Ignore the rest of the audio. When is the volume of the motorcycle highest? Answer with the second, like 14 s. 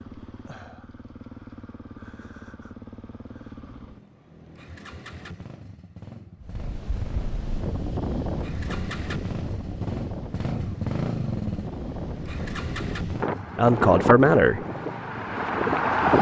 11 s.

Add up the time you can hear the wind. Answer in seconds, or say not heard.
10 s.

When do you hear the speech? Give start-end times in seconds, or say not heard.
13.6-14.6.